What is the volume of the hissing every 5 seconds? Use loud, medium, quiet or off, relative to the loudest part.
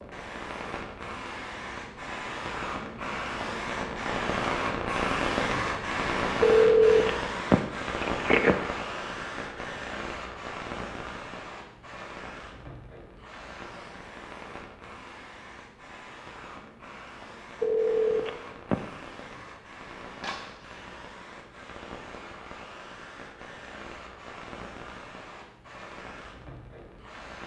loud, loud, medium, quiet, quiet, quiet.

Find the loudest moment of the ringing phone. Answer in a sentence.
The loudest moment of the ringing phone is at 7 seconds.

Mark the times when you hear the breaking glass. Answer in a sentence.
The breaking glass can be heard from 20.2 to 20.8 s.